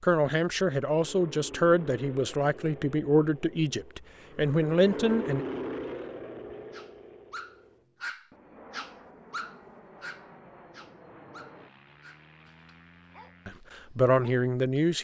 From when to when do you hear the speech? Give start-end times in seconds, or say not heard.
0.0-5.5, 13.4-14.9.